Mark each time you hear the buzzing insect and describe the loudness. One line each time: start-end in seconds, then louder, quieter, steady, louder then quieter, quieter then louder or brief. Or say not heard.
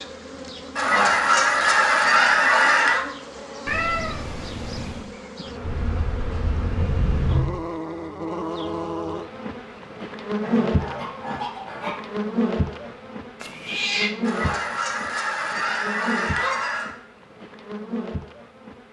0.0-18.8 louder then quieter.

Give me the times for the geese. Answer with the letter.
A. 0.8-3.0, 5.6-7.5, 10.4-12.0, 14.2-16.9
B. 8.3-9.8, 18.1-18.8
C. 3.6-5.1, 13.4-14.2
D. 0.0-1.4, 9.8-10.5
A.